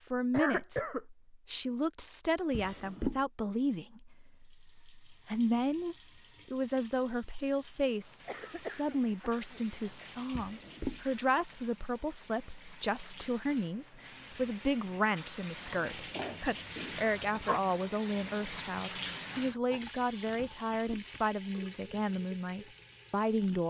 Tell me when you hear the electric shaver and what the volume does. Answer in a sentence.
You can't hear the electric shaver here.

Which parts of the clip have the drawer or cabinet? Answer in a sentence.
You can hear the drawer or cabinet from 2.5 to 3.2 s, from 10.3 to 11.1 s and from 20.4 to 21.1 s.